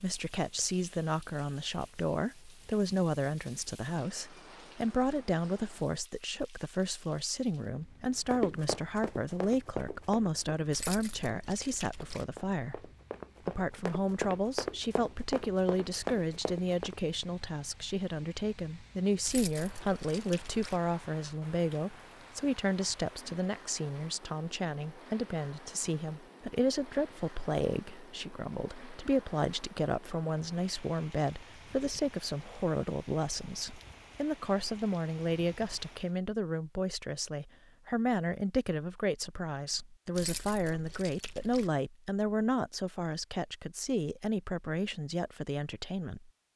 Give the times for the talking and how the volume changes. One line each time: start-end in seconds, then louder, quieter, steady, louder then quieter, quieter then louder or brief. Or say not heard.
0.0-46.3 steady.